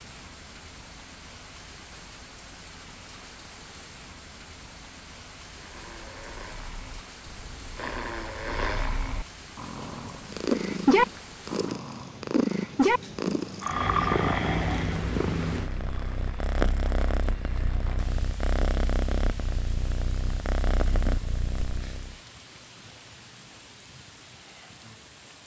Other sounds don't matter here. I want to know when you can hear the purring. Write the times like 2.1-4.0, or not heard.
9.6-22.1.